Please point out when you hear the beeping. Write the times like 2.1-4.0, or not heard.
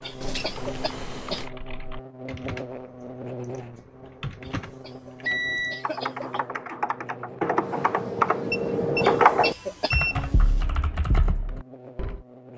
0.2-1.5, 5.2-5.8, 8.5-10.3.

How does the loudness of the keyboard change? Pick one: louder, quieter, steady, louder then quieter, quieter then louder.
louder then quieter.